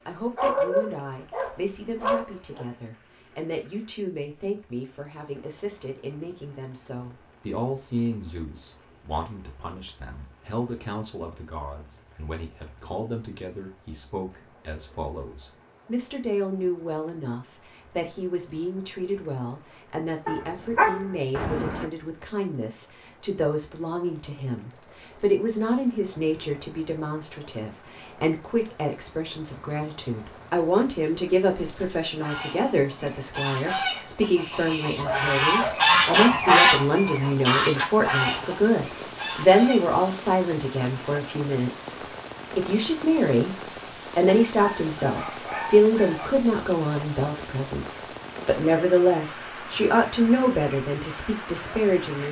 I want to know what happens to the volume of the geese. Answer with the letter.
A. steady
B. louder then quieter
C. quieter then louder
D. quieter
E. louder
B.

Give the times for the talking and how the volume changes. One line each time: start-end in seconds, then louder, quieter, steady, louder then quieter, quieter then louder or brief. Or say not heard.
0.1-52.2 louder.